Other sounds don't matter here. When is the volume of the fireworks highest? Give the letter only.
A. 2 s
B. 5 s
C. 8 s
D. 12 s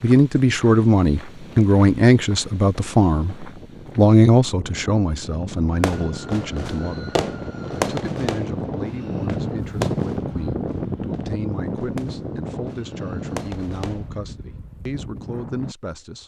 C.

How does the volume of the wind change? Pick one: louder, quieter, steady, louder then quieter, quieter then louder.
louder then quieter.